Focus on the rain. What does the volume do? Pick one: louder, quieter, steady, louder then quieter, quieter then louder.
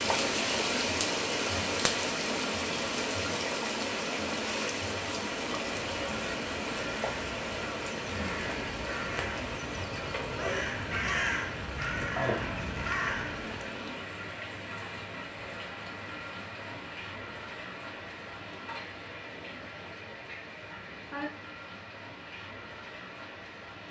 quieter.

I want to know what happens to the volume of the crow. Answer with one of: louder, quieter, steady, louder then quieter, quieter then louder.
louder.